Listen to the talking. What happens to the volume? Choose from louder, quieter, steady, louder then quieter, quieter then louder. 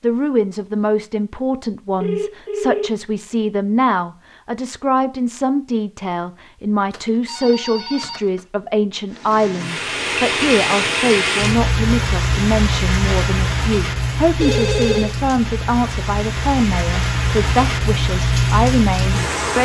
steady.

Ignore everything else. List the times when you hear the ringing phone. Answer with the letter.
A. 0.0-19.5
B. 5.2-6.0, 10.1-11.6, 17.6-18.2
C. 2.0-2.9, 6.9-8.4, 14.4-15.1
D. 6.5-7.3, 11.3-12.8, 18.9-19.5
C.